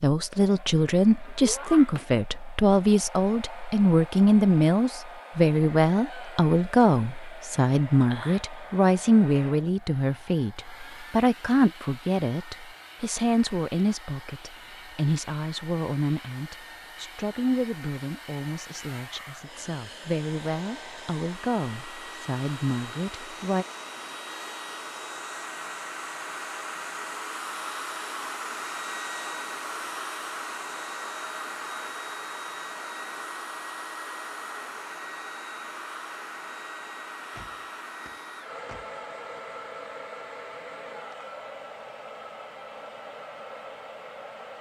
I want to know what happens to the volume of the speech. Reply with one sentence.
The volume of the speech goes down.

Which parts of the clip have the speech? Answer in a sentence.
You can hear the speech from 0.0 to 23.6 s.